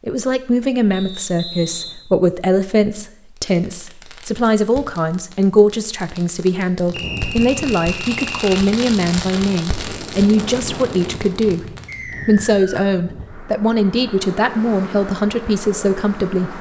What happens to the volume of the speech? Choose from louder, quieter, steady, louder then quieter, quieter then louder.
steady.